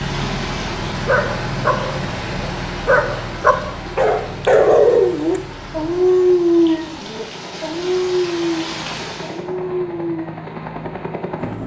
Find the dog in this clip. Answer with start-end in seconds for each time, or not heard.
0.9-10.4.